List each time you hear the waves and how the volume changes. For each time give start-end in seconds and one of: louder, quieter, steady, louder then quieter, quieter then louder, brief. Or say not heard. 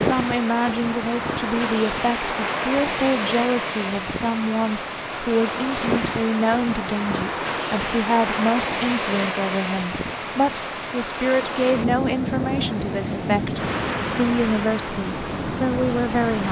0.0-16.4 steady.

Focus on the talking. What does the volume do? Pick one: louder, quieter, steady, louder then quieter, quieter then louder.
steady.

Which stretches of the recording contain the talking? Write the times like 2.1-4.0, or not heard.
0.0-16.4.